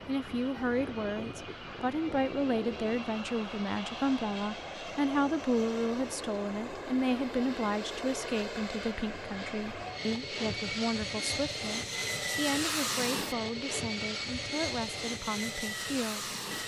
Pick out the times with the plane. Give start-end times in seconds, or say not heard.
0.0-16.6.